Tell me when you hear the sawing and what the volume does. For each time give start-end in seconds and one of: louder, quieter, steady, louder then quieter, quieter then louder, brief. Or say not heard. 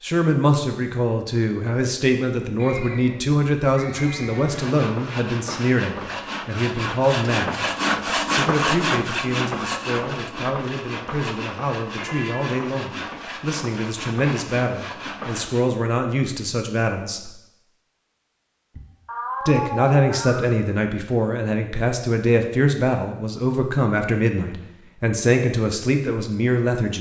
4.3-15.7 louder then quieter.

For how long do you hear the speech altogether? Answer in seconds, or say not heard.
24 s.